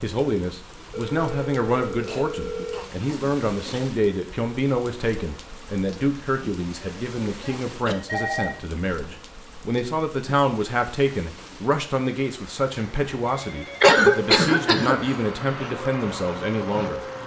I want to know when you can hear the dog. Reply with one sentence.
You can't hear the dog here.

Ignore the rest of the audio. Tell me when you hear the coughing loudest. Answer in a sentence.
The loudest moment of the coughing is at 14 seconds.